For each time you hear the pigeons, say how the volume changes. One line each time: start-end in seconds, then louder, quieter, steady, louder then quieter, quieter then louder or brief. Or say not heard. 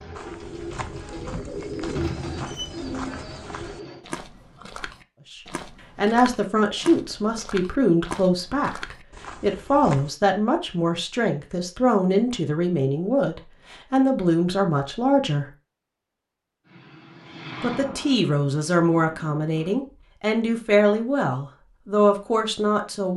0.0-4.0 louder then quieter.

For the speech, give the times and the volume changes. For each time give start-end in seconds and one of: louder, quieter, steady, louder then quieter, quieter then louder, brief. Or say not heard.
5.3-15.5 steady
17.6-23.1 steady.